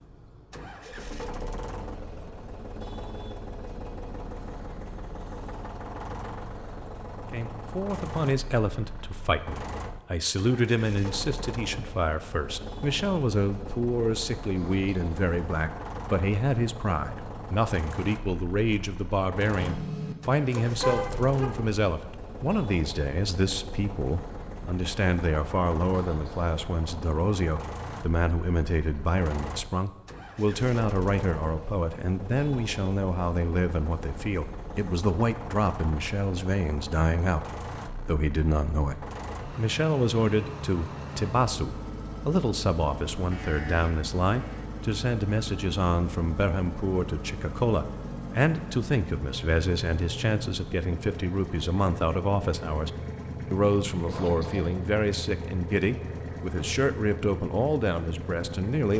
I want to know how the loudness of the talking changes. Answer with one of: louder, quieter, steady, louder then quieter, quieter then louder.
steady.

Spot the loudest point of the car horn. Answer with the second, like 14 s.
21 s.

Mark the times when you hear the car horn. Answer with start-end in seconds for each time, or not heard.
19.6-21.5, 43.3-44.6.